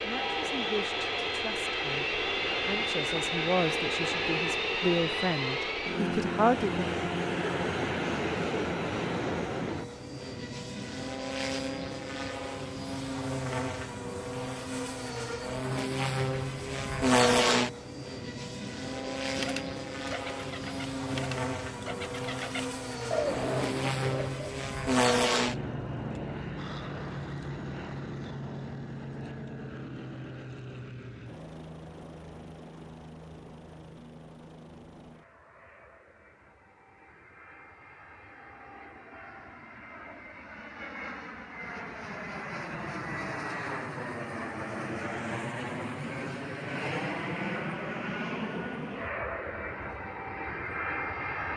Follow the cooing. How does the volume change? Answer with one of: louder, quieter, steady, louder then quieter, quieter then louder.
louder.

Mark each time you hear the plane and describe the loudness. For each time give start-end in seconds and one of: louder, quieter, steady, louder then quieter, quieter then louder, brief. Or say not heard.
0.0-51.5 quieter then louder.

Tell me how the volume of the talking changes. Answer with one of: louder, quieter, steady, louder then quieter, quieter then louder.
louder.